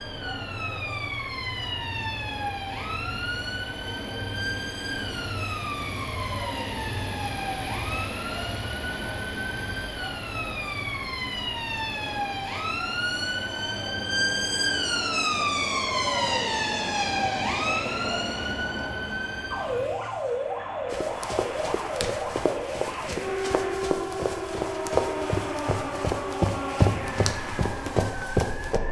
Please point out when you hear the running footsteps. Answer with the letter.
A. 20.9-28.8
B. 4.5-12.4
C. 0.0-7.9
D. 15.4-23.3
A.